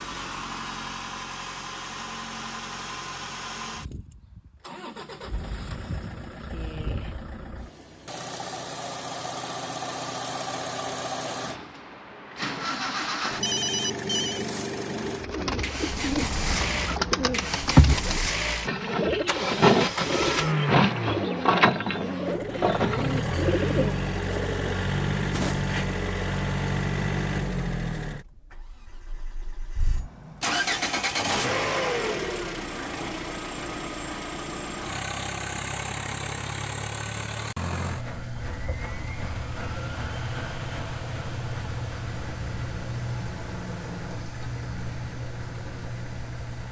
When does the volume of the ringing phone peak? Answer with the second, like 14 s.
14 s.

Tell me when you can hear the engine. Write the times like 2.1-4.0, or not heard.
0.0-46.6.